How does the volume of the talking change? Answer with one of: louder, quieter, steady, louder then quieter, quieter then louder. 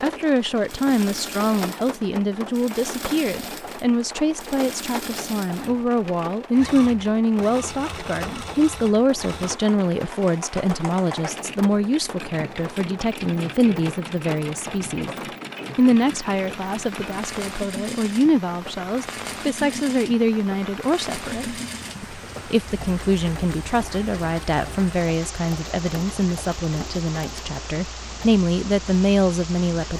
steady.